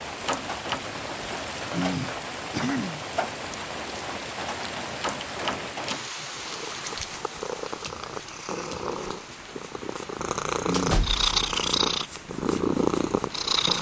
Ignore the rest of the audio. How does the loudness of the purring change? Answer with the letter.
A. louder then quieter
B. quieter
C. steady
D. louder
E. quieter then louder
D.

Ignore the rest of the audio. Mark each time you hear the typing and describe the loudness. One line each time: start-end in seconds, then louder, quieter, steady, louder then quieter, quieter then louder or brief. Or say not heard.
not heard.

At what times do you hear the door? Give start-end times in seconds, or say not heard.
0.2-0.8, 5.0-6.0, 10.7-11.3.